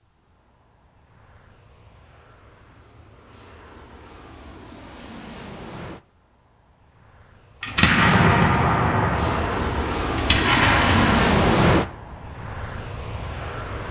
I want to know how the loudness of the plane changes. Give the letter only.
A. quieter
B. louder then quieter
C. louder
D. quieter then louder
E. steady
C.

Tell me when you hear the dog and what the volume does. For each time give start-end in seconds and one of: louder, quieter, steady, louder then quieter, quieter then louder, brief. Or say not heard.
not heard.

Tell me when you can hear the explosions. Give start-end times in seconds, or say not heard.
7.6-11.9.